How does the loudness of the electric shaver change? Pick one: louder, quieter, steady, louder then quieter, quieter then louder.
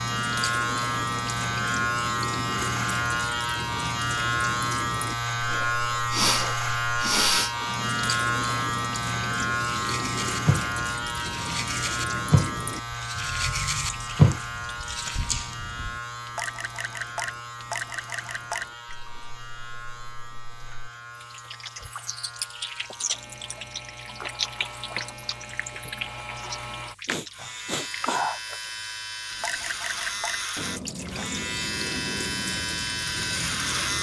quieter then louder.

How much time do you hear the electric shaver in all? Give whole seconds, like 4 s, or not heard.
34 s.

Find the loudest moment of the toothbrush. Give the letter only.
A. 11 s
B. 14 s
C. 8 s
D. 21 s
B.